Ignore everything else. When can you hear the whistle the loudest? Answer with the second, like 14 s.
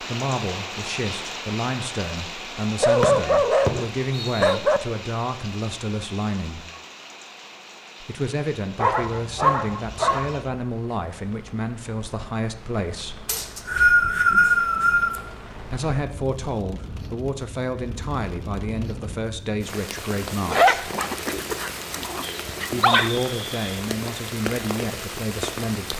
14 s.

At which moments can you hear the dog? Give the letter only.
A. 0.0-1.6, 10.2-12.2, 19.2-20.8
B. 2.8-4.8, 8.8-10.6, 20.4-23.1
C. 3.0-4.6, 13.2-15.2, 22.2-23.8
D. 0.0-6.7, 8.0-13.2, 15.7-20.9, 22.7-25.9
B.